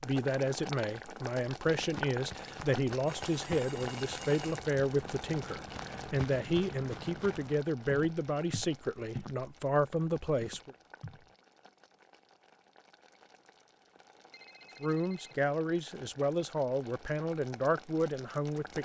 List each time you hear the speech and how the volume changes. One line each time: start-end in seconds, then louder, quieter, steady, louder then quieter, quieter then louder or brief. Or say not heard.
0.0-10.8 steady
14.8-18.8 steady.